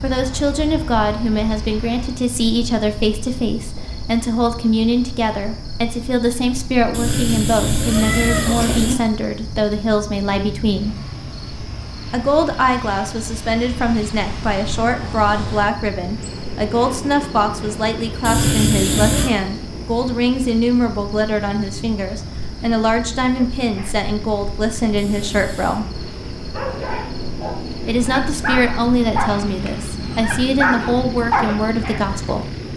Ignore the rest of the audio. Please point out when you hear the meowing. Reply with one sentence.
You can hear the meowing from 6.9 to 8.9 s, from 18.2 to 19.3 s and from 24.9 to 25.8 s.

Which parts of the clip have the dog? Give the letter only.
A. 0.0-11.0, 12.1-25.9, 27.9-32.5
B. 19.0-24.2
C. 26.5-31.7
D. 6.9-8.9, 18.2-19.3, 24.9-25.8
C.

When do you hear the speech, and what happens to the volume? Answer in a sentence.
The speech can be heard from 0.0 to 11.0 s, at a steady volume; from 12.1 to 25.9 s, at a steady volume; and from 27.9 to 32.5 s, at a steady volume.